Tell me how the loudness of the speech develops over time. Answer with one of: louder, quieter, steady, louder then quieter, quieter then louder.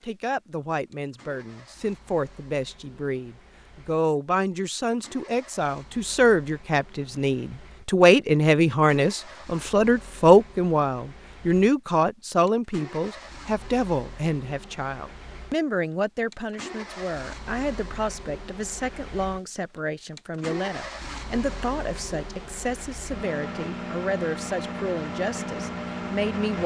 louder then quieter.